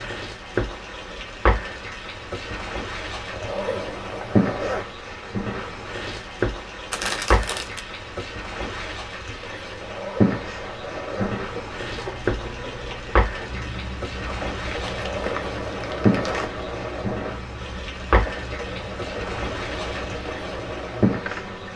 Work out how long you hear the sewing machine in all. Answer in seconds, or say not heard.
10 s.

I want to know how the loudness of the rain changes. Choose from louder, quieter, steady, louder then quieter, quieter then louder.
steady.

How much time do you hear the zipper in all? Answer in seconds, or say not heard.
5 s.